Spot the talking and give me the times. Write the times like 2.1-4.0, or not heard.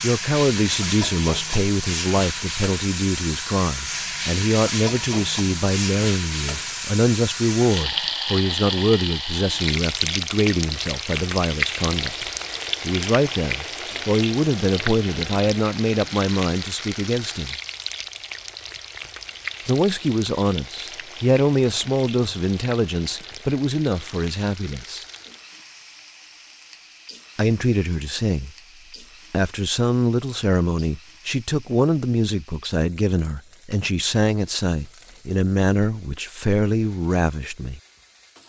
0.0-17.6, 19.6-25.1, 27.4-28.5, 29.3-37.8.